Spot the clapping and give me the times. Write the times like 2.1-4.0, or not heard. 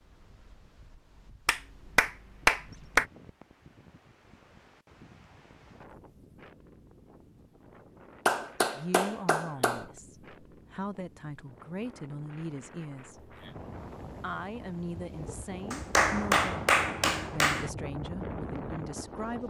1.4-3.0, 8.2-9.8, 15.7-17.7.